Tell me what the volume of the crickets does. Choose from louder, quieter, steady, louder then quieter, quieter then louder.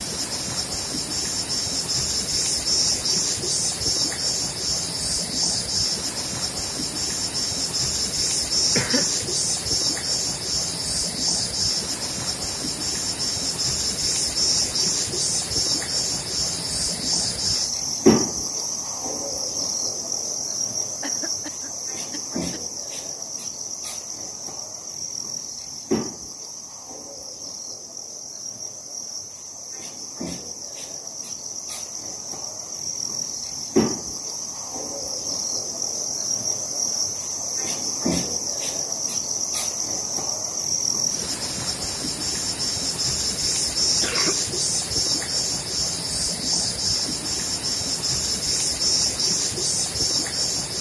quieter then louder.